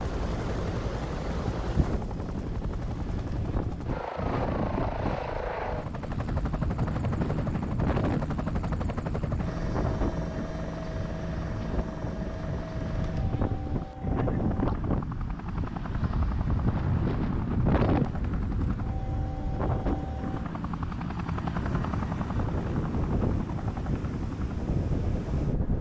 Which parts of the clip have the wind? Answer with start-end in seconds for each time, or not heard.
0.0-25.7.